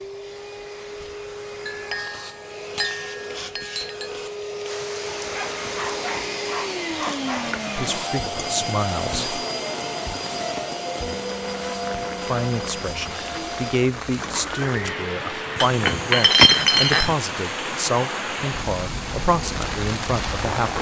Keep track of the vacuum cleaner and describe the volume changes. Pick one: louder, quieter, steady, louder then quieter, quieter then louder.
louder then quieter.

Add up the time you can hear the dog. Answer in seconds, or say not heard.
2 s.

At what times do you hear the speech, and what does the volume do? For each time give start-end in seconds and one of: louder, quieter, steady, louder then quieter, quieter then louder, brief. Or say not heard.
7.8-9.3 brief
12.2-20.7 steady.